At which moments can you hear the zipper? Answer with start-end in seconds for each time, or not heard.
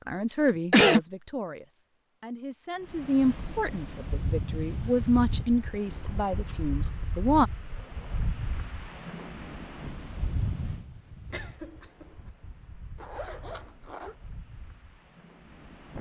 12.9-14.2.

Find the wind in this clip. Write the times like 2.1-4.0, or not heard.
2.8-15.9.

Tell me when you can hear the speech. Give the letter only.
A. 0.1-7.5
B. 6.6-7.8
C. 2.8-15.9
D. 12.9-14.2
A.